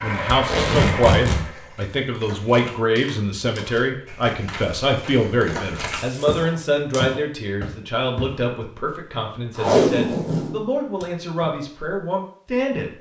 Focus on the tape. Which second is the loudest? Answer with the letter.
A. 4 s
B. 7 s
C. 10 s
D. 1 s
C.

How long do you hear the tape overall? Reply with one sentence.
The tape can be heard for 4 seconds in total.